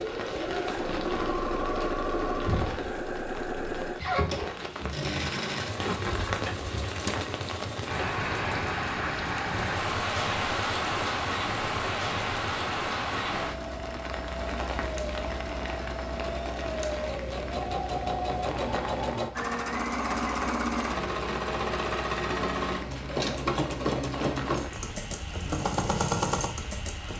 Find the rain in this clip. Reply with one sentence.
You can hear the rain from 0.0 to 27.1 s.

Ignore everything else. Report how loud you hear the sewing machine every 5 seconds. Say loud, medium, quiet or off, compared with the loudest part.
loud, medium, medium, loud, loud, loud.